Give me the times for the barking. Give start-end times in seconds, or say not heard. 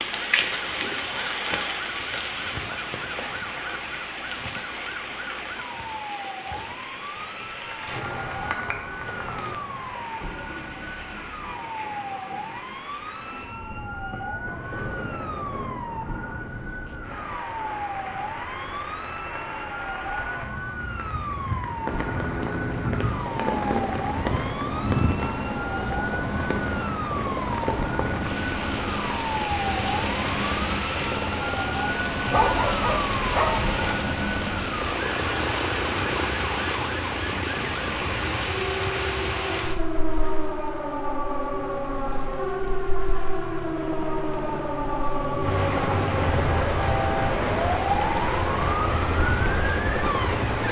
32.2-33.8.